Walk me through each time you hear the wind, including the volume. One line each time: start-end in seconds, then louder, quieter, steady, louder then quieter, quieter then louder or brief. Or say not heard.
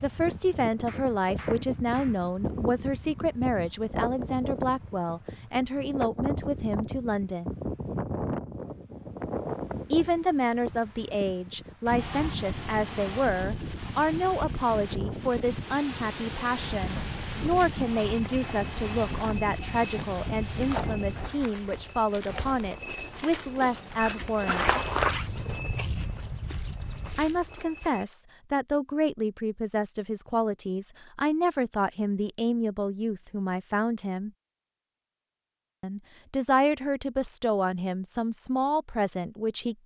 0.0-21.4 steady.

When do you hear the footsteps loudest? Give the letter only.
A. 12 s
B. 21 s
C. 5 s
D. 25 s
D.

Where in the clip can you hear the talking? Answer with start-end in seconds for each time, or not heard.
0.0-7.5, 9.9-24.6, 27.1-34.3, 35.8-39.8.